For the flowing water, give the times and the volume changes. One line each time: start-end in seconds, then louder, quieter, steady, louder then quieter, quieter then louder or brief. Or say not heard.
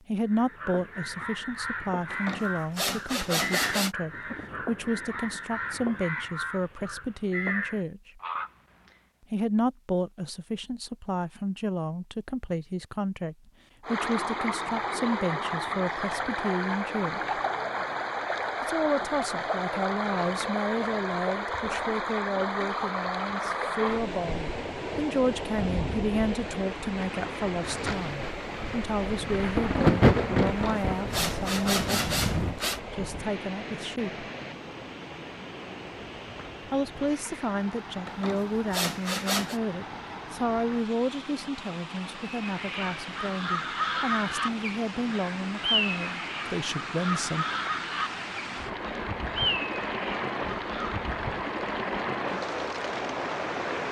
13.8-53.8 quieter then louder.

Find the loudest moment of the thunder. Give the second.
30 s.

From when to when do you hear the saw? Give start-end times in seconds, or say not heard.
2.1-4.0, 30.4-32.8, 38.0-39.6.